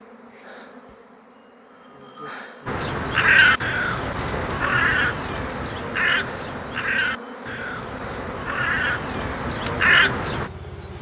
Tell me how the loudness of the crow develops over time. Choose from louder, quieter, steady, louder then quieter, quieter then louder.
quieter then louder.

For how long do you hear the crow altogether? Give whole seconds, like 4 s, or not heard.
8 s.